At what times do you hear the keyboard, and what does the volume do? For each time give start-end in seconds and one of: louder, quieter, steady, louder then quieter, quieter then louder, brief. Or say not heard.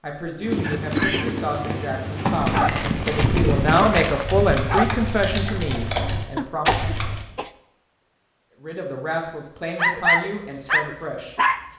0.4-7.2 steady.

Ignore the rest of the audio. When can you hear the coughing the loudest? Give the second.
1 s.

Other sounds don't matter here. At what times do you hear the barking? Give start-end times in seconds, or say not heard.
2.4-4.9, 9.8-11.7.